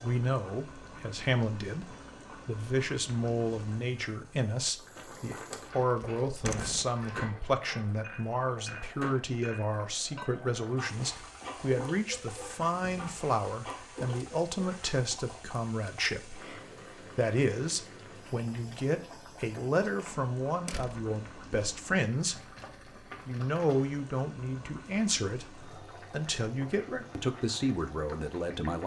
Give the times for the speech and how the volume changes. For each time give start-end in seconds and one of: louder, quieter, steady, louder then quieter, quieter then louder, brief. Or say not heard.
0.0-28.8 steady.